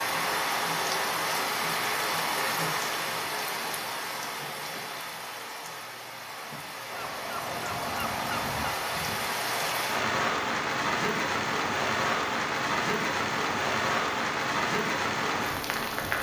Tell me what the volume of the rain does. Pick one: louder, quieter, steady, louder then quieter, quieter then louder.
quieter then louder.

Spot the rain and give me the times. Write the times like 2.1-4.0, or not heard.
0.0-16.1.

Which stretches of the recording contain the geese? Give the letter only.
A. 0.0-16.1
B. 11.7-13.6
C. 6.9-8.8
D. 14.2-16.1
C.